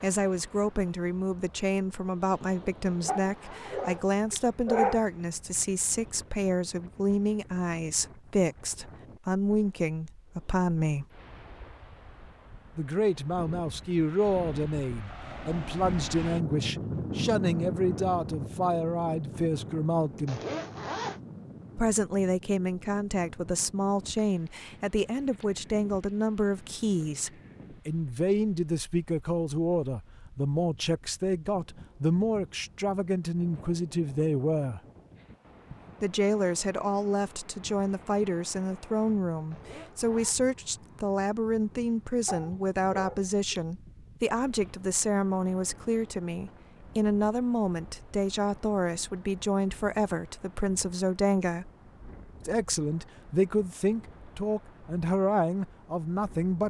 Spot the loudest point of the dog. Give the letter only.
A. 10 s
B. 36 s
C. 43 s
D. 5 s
D.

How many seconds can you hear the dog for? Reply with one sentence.
You can hear the dog for 3 seconds altogether.